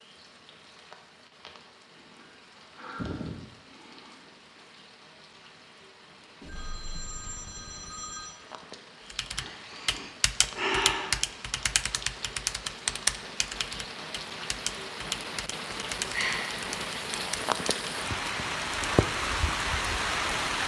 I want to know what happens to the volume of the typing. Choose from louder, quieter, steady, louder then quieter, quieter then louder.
quieter.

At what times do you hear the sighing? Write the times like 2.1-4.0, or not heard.
1.9-4.2, 9.3-11.2, 16.1-16.6.